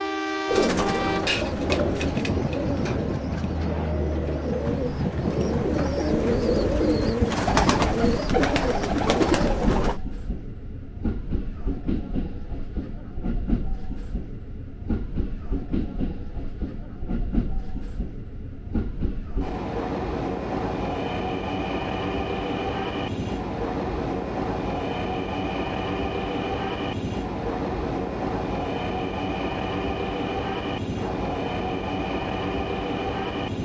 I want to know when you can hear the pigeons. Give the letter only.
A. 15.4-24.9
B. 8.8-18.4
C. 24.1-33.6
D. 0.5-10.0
D.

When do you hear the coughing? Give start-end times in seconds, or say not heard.
not heard.